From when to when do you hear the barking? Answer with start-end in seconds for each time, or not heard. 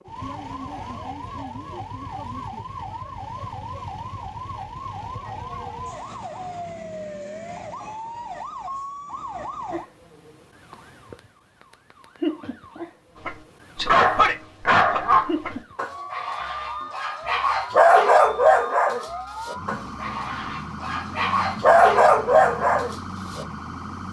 13.2-23.4.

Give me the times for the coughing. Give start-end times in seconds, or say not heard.
not heard.